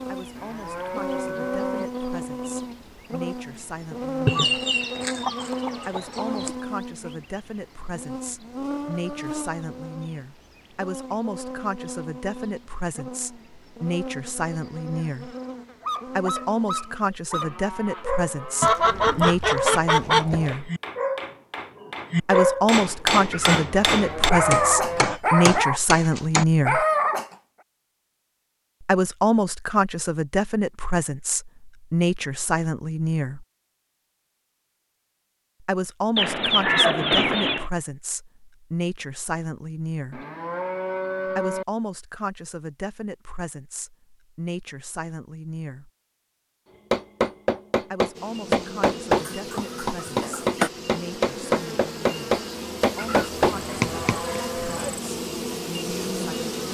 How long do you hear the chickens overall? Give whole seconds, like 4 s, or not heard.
7 s.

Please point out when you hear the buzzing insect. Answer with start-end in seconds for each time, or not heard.
0.0-17.2, 48.1-56.6.